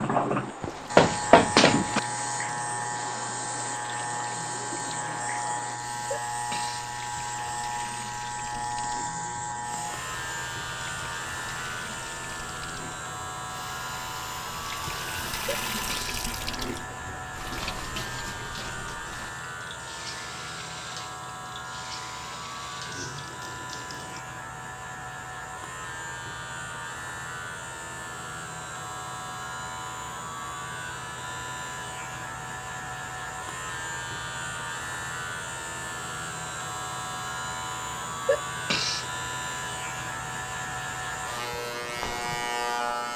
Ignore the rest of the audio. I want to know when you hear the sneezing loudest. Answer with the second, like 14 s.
39 s.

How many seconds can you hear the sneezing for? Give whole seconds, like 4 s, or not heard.
2 s.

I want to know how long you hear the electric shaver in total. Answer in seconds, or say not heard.
43 s.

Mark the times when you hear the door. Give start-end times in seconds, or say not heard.
0.6-2.0.